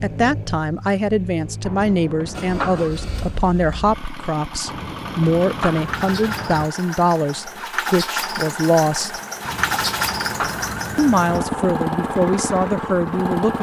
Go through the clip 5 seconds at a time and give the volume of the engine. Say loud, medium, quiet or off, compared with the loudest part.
medium, loud, loud.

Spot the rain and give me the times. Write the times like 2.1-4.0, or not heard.
not heard.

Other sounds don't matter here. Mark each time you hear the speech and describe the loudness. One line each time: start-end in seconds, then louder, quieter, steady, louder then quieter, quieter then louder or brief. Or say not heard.
0.0-9.2 steady
10.9-13.5 brief.